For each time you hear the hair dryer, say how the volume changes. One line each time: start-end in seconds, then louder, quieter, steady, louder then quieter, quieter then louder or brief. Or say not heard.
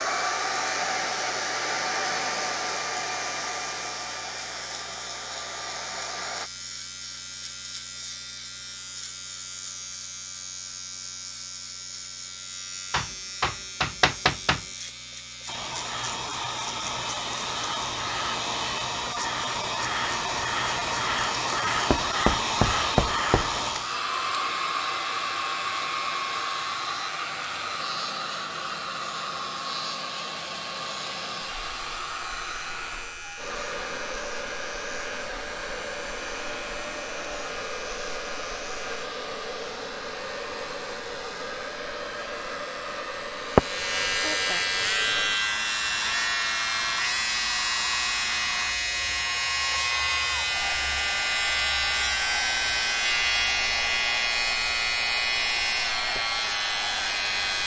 0.0-6.5 quieter
15.4-57.6 quieter.